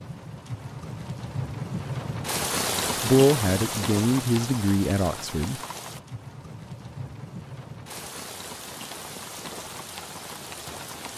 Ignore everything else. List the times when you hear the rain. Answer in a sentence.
You can hear the rain from 0.0 to 11.1 s.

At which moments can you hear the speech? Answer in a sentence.
The speech can be heard from 3.0 to 5.6 s.